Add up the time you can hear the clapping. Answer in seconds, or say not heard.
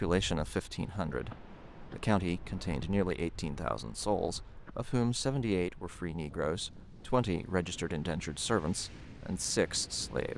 not heard.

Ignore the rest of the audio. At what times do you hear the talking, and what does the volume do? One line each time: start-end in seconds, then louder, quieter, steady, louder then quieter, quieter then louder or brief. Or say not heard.
0.0-10.3 steady.